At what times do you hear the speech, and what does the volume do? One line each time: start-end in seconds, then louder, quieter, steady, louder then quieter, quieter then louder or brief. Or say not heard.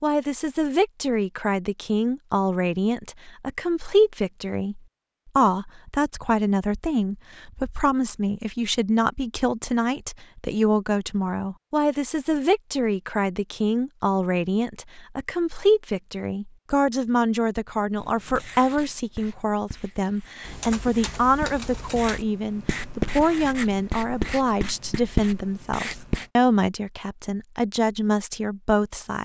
0.0-29.2 steady.